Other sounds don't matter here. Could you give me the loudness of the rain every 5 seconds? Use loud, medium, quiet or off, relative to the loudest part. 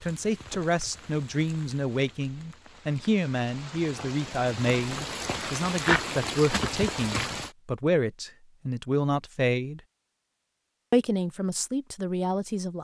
quiet, loud, off.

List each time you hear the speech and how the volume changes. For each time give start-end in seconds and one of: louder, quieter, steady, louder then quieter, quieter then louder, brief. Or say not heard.
0.0-9.8 steady
10.9-12.7 brief.